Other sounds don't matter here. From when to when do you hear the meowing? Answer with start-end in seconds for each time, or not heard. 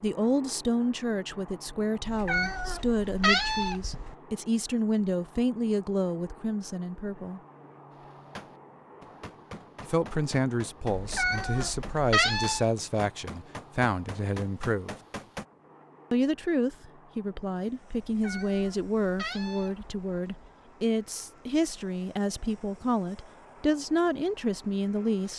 2.0-4.2, 10.9-12.7, 18.0-20.6.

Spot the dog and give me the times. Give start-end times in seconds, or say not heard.
not heard.